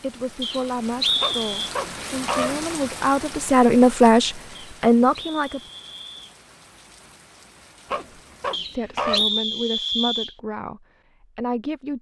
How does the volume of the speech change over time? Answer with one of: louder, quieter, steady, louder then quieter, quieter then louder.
louder then quieter.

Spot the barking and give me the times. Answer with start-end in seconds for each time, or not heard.
1.2-2.6, 7.9-9.3.